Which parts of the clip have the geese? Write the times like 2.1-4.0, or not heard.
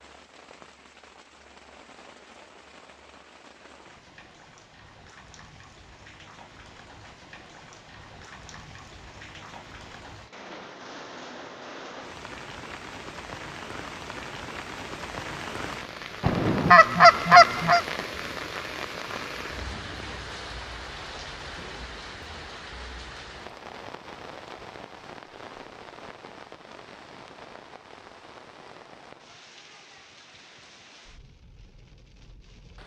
16.2-17.8.